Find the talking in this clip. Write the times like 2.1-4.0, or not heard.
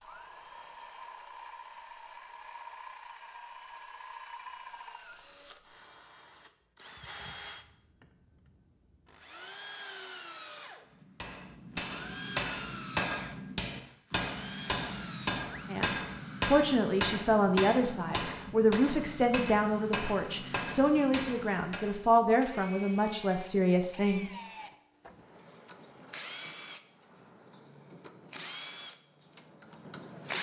15.7-24.3.